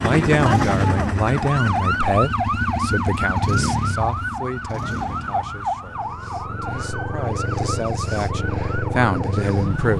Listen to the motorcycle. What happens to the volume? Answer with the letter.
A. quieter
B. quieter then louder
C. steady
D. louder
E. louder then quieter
B.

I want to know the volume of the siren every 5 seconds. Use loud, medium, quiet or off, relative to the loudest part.
loud, medium.